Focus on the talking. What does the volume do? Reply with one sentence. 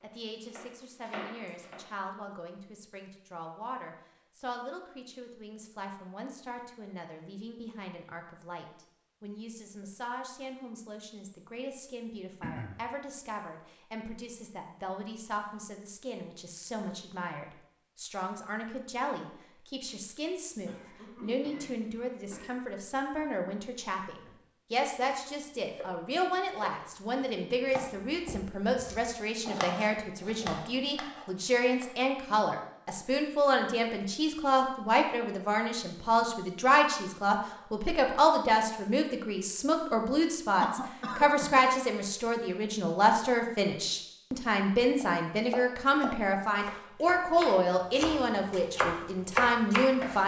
The volume of the talking goes up.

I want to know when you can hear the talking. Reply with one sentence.
The talking can be heard from 0.0 to 50.2 s.